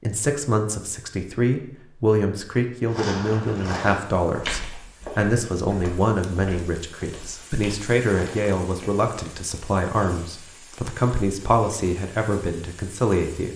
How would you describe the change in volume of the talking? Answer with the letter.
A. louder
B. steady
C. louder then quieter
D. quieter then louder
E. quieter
B.